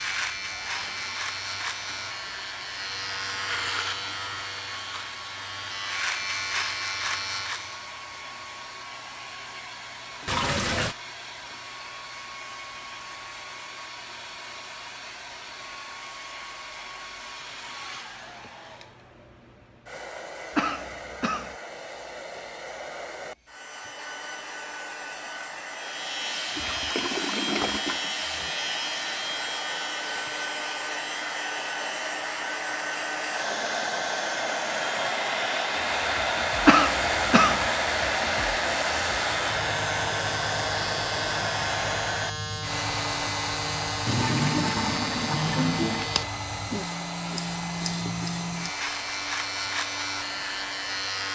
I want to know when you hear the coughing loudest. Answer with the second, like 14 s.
37 s.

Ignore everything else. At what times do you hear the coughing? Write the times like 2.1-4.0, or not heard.
20.6-21.6, 36.6-37.6.